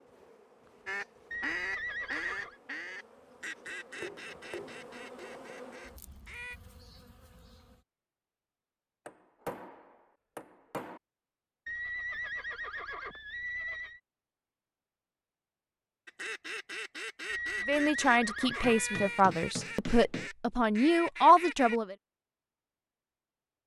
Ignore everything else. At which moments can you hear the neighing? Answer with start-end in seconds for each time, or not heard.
1.3-2.6, 11.7-14.0, 17.2-19.0.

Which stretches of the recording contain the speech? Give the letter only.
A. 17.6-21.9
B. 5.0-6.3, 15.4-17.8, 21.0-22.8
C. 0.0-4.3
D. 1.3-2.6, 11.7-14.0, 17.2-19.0
A.